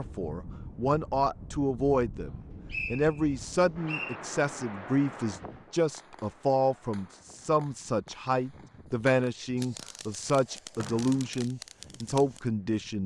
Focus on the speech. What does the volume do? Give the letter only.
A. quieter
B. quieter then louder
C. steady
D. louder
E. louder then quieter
C.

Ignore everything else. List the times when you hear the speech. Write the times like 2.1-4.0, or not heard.
0.0-13.0.